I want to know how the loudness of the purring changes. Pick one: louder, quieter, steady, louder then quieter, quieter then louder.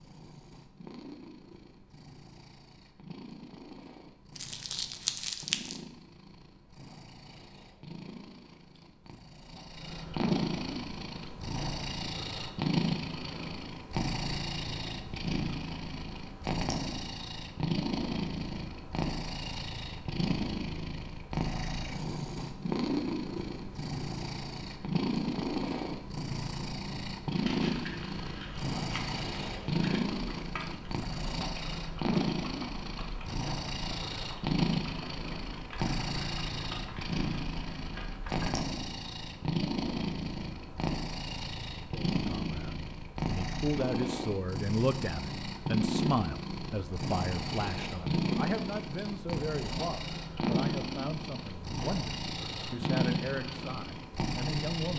louder.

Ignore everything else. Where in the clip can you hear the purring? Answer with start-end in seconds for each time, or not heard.
0.0-54.9.